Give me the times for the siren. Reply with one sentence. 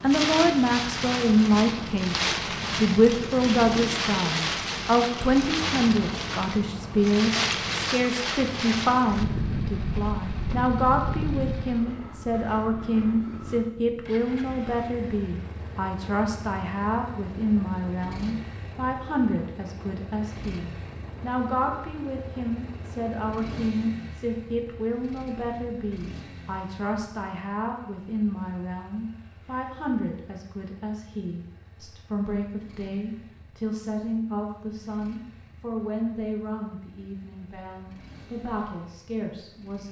You can't hear the siren here.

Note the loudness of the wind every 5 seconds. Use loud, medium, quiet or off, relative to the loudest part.
loud, loud, medium, quiet, quiet, off, off, off.